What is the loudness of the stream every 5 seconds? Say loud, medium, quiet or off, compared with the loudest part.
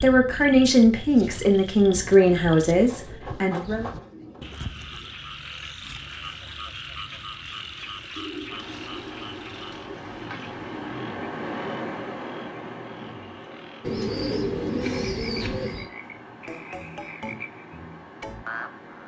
off, medium, loud, medium.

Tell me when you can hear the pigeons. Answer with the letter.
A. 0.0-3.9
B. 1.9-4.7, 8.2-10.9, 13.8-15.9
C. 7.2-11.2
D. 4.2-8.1
B.